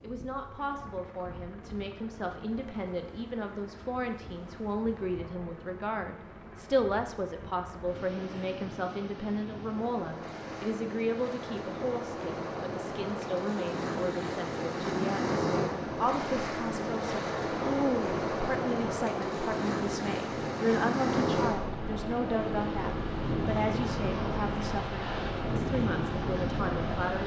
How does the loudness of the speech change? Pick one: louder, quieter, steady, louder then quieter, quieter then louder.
steady.